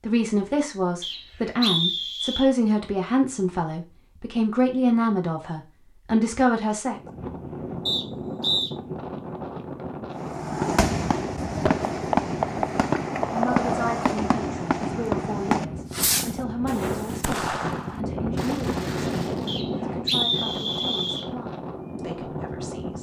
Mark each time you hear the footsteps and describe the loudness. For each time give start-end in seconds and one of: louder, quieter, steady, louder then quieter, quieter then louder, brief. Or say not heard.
not heard.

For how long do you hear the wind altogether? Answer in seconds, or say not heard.
16 s.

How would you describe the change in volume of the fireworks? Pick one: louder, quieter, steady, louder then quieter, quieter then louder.
quieter.